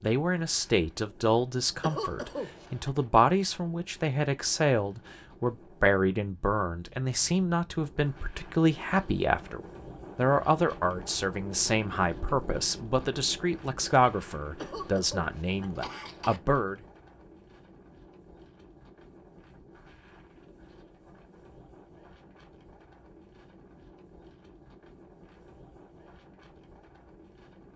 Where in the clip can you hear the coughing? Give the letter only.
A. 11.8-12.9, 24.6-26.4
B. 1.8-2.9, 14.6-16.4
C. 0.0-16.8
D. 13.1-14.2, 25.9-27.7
B.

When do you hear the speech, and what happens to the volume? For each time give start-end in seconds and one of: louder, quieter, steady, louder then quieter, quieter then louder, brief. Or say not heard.
0.0-16.8 steady.